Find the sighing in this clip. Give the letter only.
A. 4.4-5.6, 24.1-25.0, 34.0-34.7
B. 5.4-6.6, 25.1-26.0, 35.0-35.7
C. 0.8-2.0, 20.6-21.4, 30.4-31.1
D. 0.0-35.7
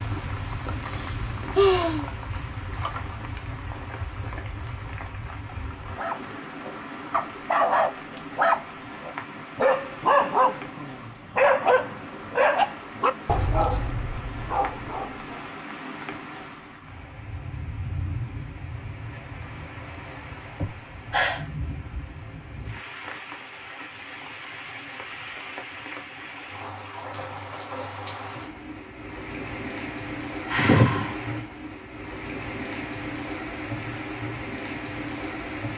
C.